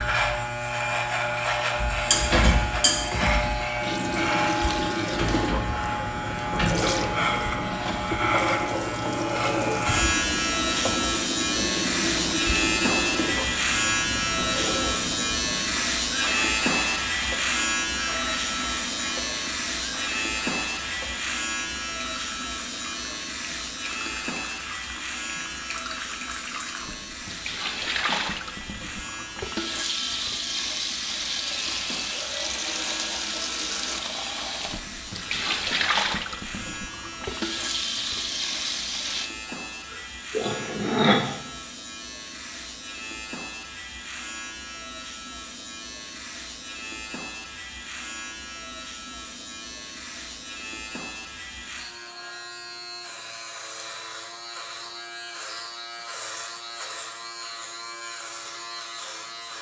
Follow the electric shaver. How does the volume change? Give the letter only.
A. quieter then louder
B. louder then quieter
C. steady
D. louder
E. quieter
E.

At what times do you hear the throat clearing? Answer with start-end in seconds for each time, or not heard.
39.9-41.2.